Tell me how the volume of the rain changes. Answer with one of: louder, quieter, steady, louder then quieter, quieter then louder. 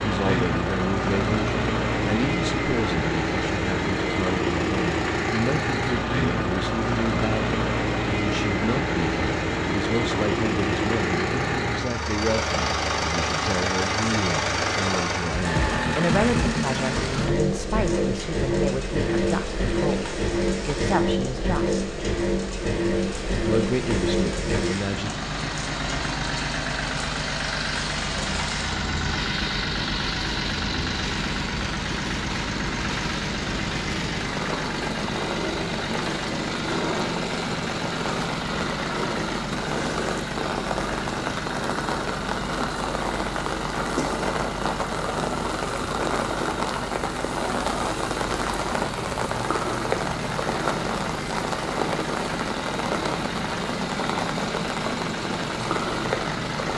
louder.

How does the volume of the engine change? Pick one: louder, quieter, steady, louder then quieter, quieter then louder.
quieter.